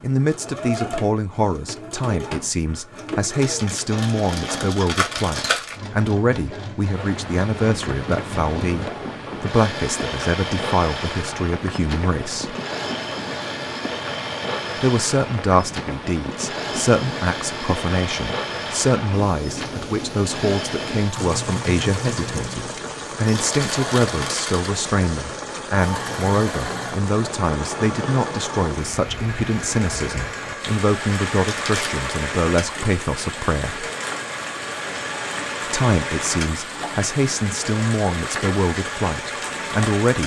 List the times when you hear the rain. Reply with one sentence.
You can hear the rain from 6.9 to 40.2 s.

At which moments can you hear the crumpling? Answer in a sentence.
You can hear the crumpling from 3.4 to 5.8 s, from 23.4 to 24.7 s and from 31.4 to 32.0 s.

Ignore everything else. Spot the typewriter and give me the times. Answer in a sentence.
The typewriter can't be heard in this clip.